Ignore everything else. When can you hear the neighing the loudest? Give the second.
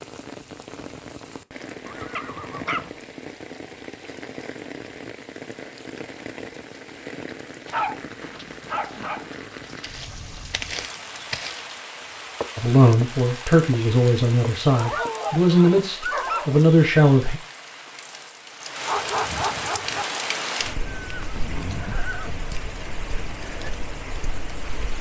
22 s.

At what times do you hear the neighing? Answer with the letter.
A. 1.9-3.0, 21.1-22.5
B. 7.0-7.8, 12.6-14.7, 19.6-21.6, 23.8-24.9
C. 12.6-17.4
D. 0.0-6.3
A.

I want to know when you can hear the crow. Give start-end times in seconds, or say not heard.
not heard.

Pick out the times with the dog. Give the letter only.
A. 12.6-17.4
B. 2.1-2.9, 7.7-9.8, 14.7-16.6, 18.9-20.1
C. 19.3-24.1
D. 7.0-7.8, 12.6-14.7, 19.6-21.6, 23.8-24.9
B.